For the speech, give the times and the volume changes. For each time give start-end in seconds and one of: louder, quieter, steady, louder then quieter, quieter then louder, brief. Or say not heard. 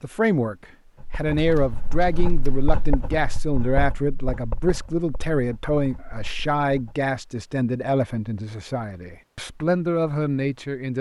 0.0-10.9 steady.